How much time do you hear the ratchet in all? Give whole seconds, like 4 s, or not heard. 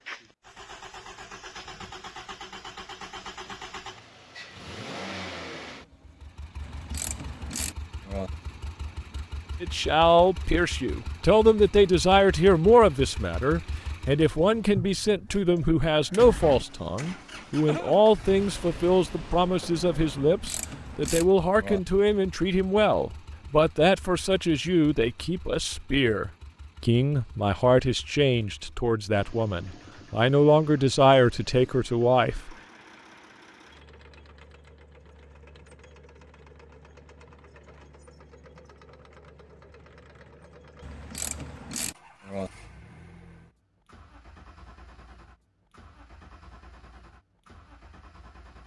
5 s.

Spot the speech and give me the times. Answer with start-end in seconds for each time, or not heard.
9.6-32.5.